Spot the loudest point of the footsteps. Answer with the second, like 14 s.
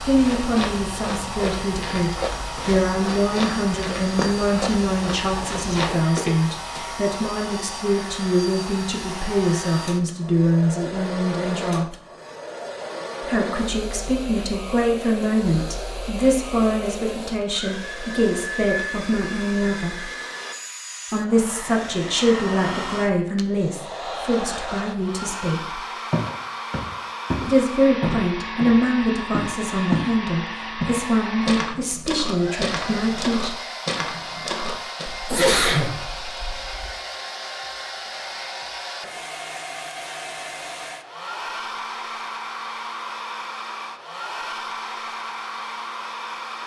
30 s.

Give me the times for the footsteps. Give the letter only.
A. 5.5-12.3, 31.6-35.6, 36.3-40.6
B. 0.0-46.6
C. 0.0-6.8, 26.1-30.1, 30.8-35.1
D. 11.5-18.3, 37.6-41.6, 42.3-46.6
C.